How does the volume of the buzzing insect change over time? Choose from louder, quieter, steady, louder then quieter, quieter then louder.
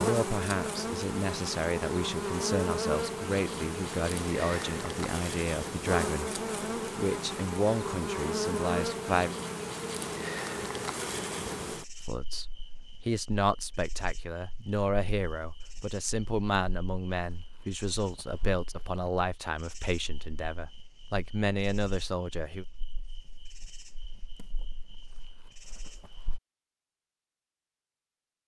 quieter.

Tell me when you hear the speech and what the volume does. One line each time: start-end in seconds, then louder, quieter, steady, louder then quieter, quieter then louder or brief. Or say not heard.
0.0-9.3 steady
12.0-22.6 steady.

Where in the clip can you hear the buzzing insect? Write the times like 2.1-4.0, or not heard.
0.0-26.4.